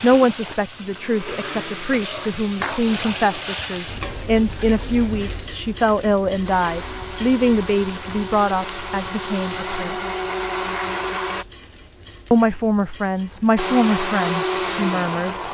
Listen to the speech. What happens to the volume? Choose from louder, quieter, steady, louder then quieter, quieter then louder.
steady.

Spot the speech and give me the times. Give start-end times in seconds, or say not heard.
0.0-10.0, 12.3-15.4.